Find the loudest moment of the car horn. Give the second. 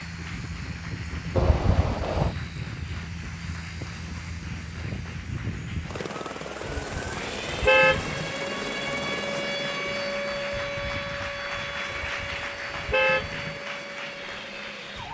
8 s.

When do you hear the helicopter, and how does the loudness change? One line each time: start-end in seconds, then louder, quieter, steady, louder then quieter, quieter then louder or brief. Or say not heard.
0.0-15.0 quieter.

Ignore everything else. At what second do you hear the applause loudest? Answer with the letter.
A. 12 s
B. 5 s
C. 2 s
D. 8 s
A.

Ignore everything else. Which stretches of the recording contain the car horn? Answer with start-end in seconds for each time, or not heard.
1.4-2.4, 6.6-8.3, 11.9-13.6.